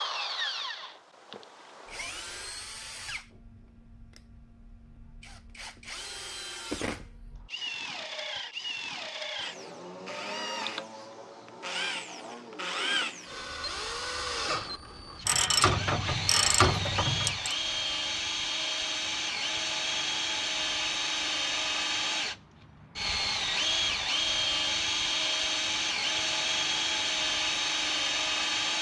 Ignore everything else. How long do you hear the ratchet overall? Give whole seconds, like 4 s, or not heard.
2 s.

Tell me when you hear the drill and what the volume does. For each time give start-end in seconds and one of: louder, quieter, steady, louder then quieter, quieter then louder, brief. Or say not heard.
0.0-28.7 louder.